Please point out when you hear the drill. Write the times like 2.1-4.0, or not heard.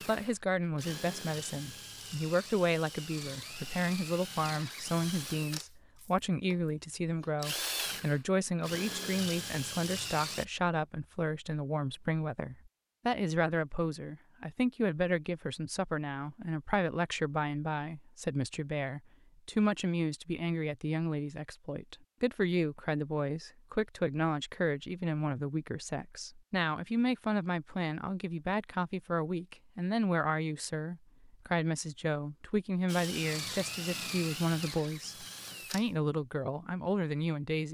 0.0-10.4, 32.9-35.9.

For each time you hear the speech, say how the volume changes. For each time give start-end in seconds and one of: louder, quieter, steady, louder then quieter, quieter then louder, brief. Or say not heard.
0.1-37.6 steady.